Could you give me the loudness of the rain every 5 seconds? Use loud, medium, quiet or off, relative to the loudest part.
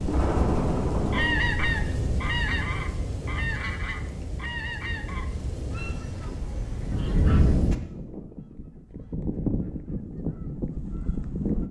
loud, loud, off.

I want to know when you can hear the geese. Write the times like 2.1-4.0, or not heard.
1.1-11.6.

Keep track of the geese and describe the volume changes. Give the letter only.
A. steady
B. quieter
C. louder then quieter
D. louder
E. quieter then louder
E.